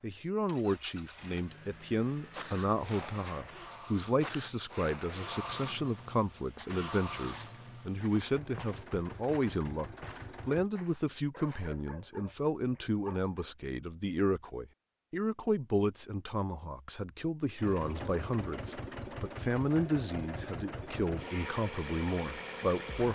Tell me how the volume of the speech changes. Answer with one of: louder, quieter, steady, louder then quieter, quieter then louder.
steady.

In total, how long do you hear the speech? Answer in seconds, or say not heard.
23 s.